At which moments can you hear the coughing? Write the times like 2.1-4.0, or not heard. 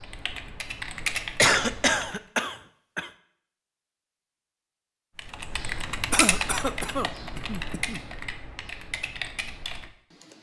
1.4-3.1, 6.1-8.0.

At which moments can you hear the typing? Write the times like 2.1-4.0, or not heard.
0.0-2.2, 5.2-10.3.